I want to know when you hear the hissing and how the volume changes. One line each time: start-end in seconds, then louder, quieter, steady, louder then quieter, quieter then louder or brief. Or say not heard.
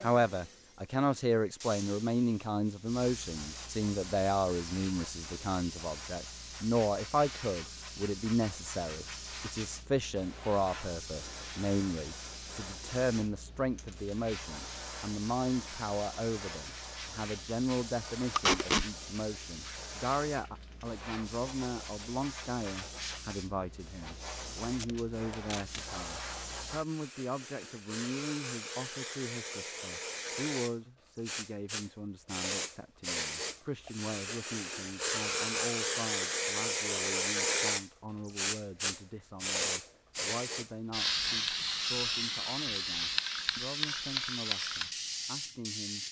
0.0-46.0 louder.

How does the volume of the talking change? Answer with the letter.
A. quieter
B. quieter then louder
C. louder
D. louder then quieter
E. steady
A.